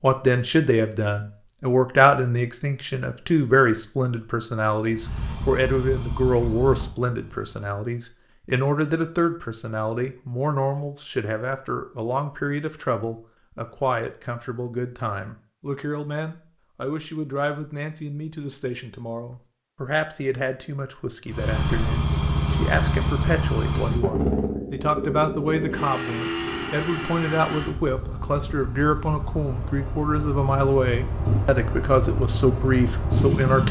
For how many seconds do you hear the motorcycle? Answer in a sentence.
You can hear the motorcycle for 15 seconds altogether.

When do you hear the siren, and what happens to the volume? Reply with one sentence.
The siren can't be heard in this clip.